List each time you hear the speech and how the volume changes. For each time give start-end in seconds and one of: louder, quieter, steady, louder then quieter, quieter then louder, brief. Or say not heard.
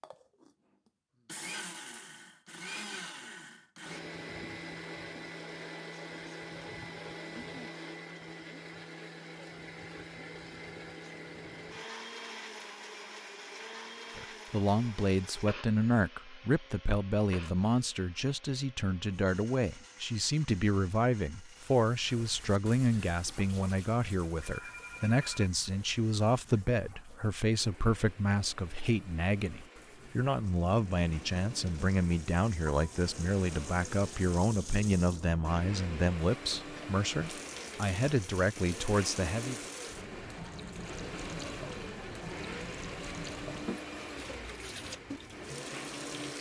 14.2-39.5 steady.